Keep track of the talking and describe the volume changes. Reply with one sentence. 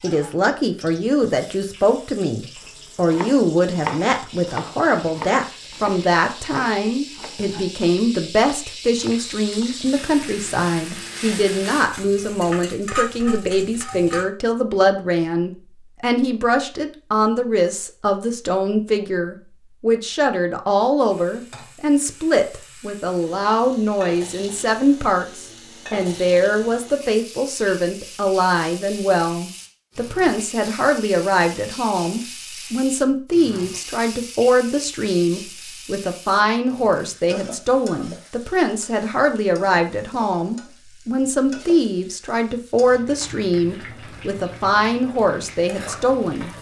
The volume of the talking stays about the same.